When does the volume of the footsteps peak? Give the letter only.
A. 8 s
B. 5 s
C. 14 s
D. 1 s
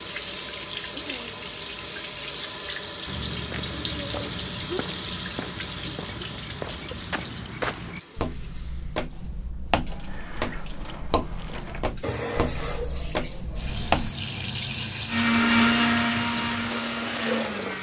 C.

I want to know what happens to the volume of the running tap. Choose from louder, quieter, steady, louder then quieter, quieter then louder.
quieter then louder.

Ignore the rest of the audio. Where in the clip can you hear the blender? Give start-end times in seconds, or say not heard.
15.1-17.7.